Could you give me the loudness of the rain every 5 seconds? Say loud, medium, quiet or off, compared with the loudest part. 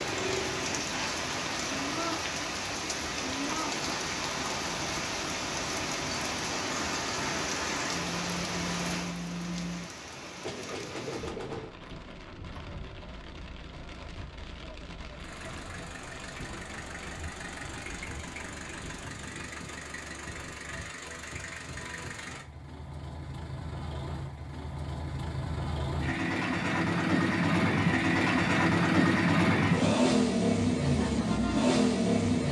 loud, loud, quiet, quiet, off, off, off.